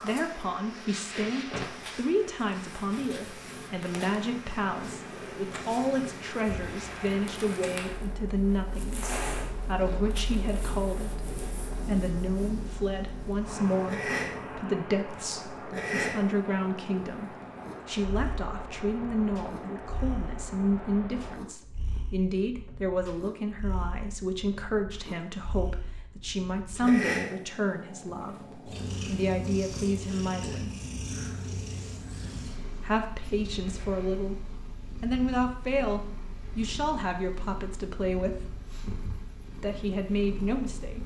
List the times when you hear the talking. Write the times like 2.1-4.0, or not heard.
0.0-30.7, 32.8-34.4, 35.0-38.5, 39.6-41.0.